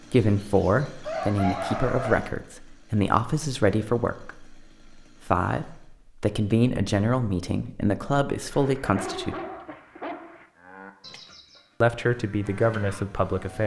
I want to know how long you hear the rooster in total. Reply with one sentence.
The rooster can be heard for 2 seconds in total.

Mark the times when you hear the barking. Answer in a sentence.
The barking can be heard from 8.5 to 10.5 s.